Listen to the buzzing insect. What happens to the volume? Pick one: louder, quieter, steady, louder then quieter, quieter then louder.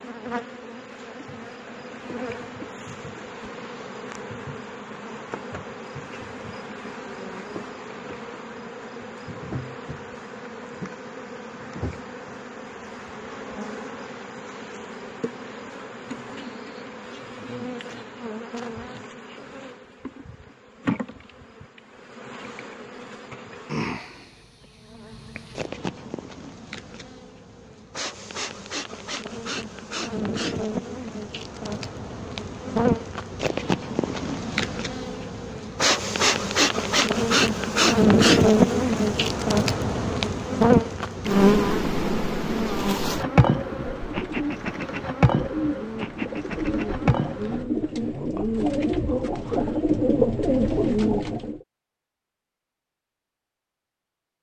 louder.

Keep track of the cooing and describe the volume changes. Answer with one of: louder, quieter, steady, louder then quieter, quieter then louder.
louder.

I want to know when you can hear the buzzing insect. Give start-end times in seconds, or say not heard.
0.0-47.6.